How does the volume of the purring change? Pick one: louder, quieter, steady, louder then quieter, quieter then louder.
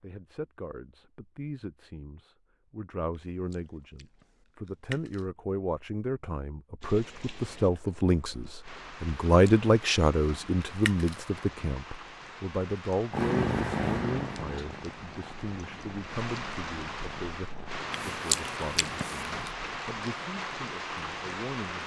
quieter.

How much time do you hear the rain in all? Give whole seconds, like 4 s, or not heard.
15 s.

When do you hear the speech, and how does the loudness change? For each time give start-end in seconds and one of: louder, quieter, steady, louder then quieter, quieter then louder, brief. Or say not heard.
0.0-21.8 louder then quieter.